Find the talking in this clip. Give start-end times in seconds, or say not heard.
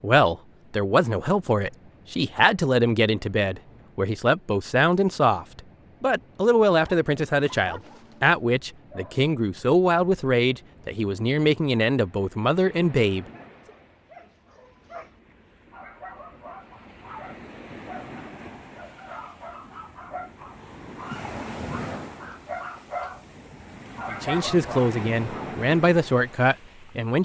0.0-13.2, 24.1-27.2.